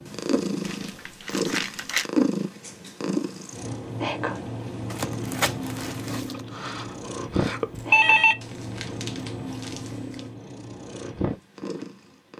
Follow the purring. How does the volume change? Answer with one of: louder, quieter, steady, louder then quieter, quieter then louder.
quieter.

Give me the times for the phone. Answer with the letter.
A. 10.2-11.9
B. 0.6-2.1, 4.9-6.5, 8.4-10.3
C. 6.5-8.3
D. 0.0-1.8
C.